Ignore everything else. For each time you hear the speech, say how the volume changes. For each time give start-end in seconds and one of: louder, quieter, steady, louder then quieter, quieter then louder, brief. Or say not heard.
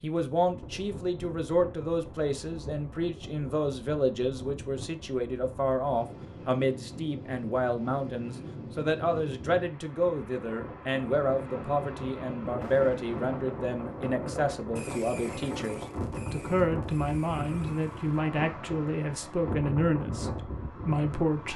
0.0-21.5 steady.